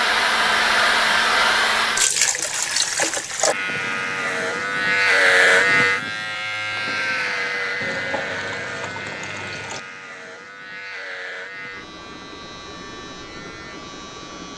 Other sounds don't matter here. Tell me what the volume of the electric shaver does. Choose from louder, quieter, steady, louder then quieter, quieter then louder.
quieter.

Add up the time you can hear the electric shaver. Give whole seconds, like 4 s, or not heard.
11 s.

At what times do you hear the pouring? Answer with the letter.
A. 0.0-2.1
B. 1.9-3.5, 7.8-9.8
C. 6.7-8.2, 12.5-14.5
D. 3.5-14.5
B.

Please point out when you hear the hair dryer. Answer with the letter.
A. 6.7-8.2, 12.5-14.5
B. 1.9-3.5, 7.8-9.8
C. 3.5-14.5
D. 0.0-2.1
D.